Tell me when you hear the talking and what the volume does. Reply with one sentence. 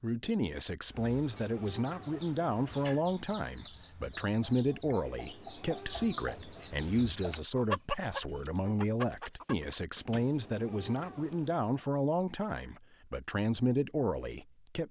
You can hear the talking from 0.0 to 14.8 s, at a steady volume.